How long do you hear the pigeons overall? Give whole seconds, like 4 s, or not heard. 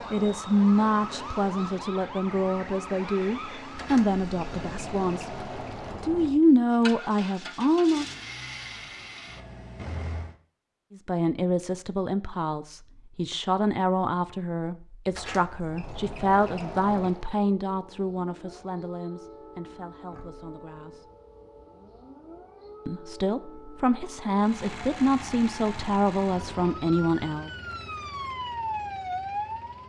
not heard.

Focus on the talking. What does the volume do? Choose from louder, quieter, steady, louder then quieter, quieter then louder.
quieter then louder.